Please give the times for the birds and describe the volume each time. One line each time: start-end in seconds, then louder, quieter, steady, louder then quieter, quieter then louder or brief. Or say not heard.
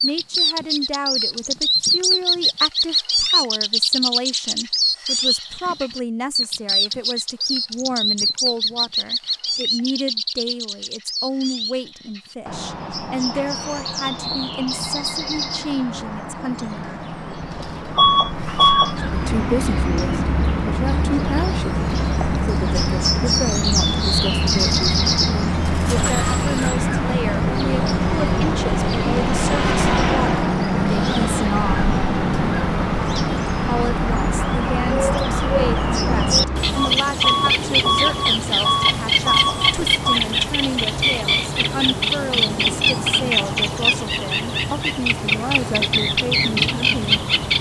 0.0-47.5 quieter then louder.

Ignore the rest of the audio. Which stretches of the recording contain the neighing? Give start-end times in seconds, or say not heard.
25.8-26.9.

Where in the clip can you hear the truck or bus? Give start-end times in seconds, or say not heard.
17.9-40.2.